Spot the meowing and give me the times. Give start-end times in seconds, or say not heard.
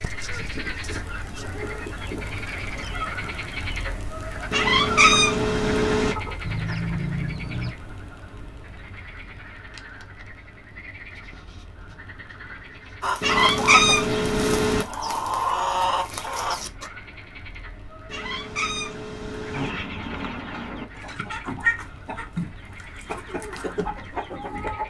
4.5-6.2, 13.2-14.8, 18.1-19.7.